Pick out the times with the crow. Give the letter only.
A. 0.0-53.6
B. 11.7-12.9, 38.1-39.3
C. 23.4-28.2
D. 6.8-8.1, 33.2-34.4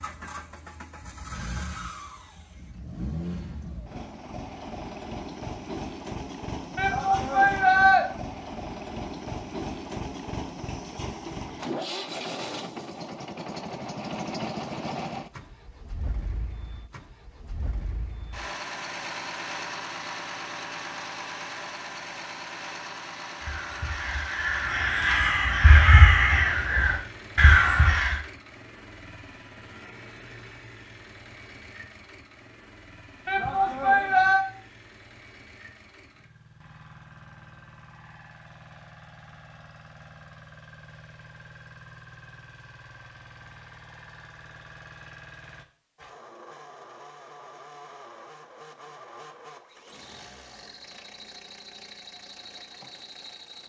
C.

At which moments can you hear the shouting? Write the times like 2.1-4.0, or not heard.
6.8-8.1, 33.2-34.4.